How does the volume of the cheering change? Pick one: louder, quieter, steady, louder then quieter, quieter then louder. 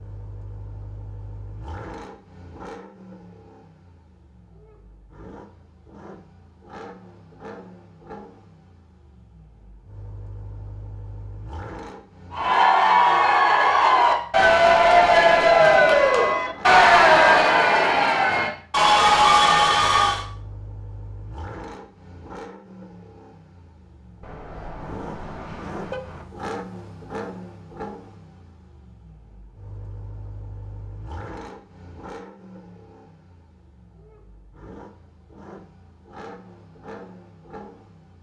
steady.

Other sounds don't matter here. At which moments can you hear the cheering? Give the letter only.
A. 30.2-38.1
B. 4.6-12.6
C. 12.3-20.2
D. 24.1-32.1
C.